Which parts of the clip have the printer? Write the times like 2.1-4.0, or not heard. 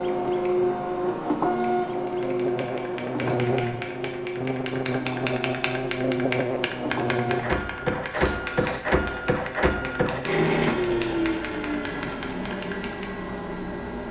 0.0-14.0.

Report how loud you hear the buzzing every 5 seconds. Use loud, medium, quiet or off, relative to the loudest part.
loud, loud, medium.